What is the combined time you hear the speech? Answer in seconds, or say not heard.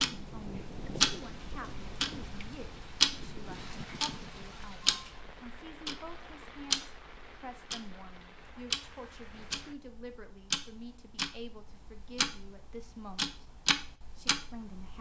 14 s.